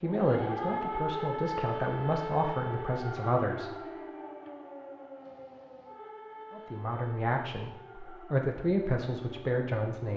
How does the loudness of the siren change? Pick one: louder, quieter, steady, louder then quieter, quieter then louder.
quieter.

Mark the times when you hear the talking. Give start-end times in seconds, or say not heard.
0.0-3.8, 6.5-10.1.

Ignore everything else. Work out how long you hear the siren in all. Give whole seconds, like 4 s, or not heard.
10 s.